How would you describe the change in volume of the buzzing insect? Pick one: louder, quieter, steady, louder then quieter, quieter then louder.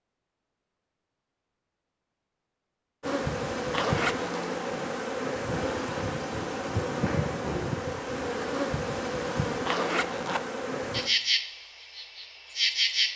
steady.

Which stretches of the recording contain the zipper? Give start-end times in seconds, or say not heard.
3.7-4.4, 9.7-10.4.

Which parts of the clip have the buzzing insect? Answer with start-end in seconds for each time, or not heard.
3.0-13.1.